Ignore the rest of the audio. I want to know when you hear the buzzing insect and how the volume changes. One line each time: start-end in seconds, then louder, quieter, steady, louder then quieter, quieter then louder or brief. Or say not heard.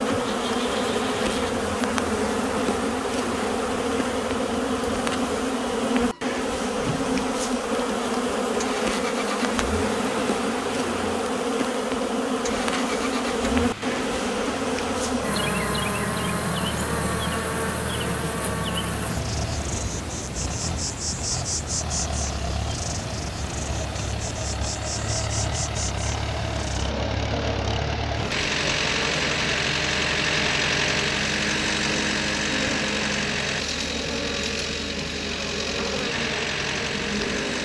0.0-37.6 quieter.